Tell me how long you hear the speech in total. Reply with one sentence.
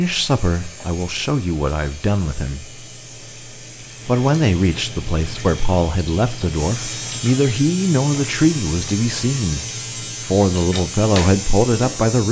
You can hear the speech for 11 seconds altogether.